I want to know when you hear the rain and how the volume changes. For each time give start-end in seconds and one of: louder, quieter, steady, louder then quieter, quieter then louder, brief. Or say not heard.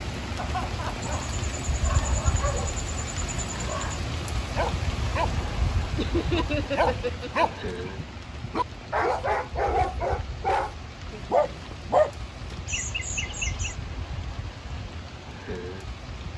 0.0-16.3 quieter.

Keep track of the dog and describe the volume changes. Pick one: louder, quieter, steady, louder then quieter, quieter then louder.
louder.